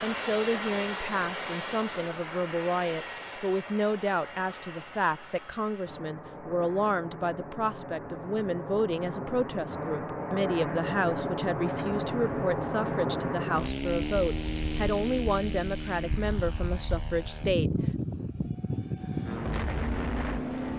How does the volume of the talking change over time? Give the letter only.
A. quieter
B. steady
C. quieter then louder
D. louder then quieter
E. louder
B.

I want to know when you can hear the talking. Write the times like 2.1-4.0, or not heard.
0.0-17.9.